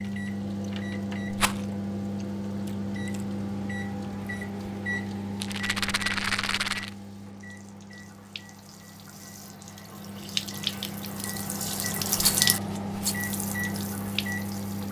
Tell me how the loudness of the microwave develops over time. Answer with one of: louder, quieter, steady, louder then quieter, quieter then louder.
quieter then louder.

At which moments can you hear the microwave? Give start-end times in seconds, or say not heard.
0.0-14.8.